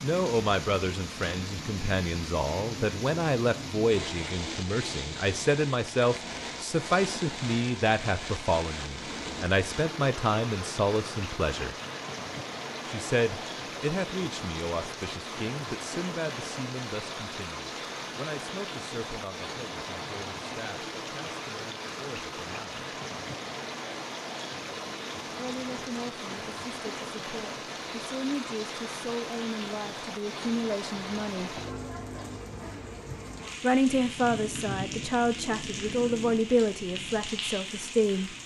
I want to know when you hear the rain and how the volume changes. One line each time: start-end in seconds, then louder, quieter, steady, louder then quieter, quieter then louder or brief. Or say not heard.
0.0-38.4 steady.